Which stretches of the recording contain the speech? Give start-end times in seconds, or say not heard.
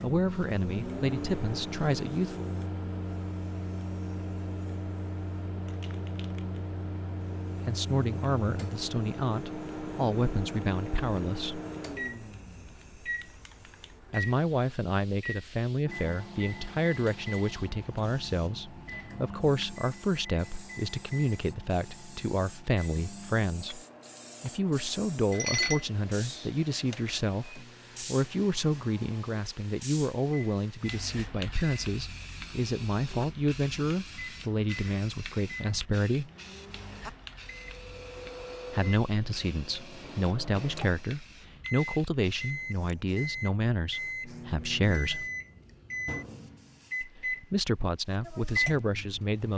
0.0-2.5, 7.7-11.6, 14.1-23.8, 24.4-36.3, 38.7-45.2, 47.0-49.5.